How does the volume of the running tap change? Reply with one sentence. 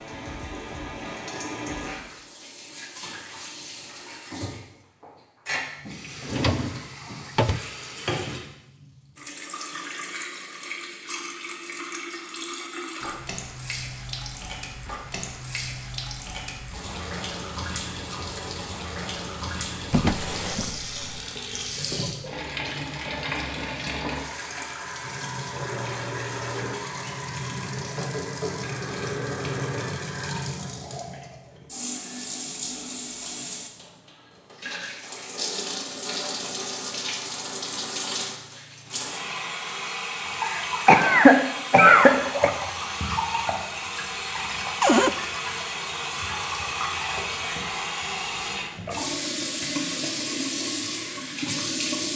The loudness of the running tap goes up.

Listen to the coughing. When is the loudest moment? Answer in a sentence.
The loudest moment of the coughing is at 42 seconds.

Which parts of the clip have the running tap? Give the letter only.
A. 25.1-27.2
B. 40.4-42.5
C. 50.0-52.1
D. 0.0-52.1
D.